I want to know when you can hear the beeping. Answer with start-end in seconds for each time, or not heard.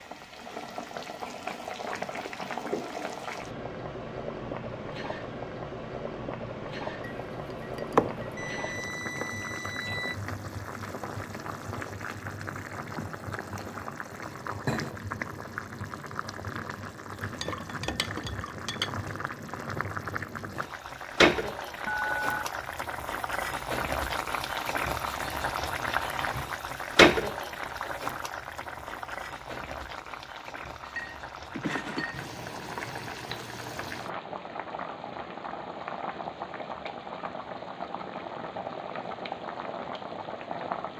8.3-10.2, 21.9-22.4.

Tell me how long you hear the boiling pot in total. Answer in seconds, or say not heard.
41 s.